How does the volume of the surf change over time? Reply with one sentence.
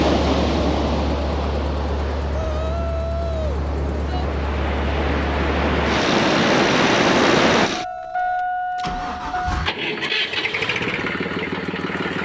The volume of the surf goes down, then up.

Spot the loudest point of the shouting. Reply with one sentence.
The volume of the shouting peaks at 3 seconds.